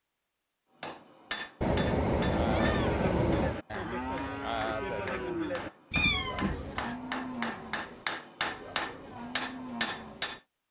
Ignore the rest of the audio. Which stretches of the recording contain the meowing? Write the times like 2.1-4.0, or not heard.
1.6-3.6, 5.9-7.0.